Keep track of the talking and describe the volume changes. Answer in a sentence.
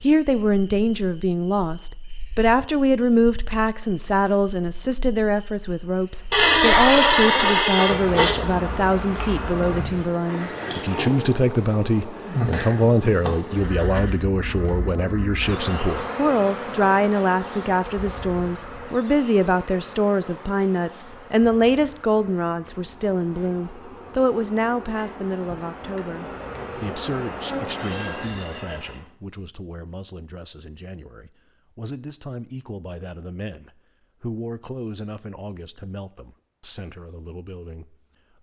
The loudness of the talking goes down.